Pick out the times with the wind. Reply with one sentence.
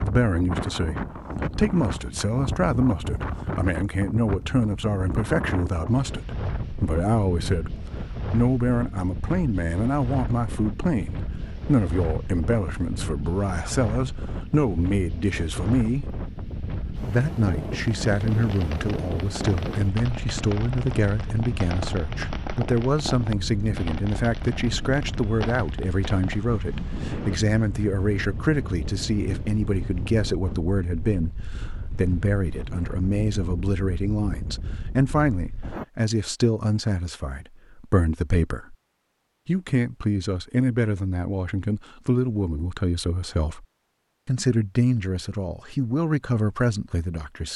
The wind can be heard from 0.0 to 35.9 s.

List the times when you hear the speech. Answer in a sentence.
You can hear the speech from 0.0 to 7.7 s, from 8.3 to 16.1 s, from 17.1 to 38.8 s, from 39.5 to 43.6 s and from 44.2 to 47.5 s.